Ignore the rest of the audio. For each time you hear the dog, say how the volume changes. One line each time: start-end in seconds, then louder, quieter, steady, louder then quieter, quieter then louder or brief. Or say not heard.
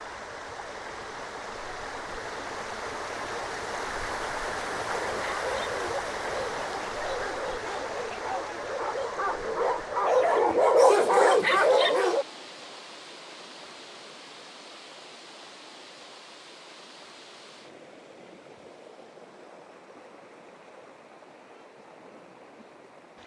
4.8-12.2 louder.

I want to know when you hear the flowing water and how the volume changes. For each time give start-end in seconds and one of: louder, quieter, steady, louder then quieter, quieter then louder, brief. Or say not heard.
0.0-23.2 quieter.